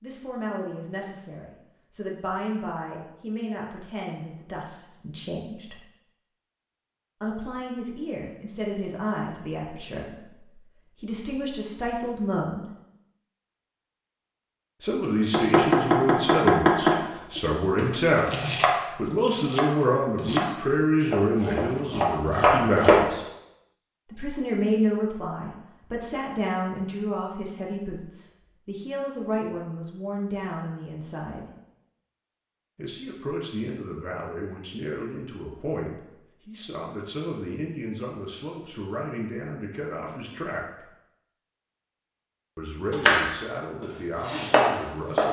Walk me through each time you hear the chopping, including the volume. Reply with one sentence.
You can hear the chopping from 15.3 to 23.1 s, getting quieter then louder; and briefly from 42.9 to 45.2 s.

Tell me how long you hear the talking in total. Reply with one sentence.
You can hear the talking for 38 seconds altogether.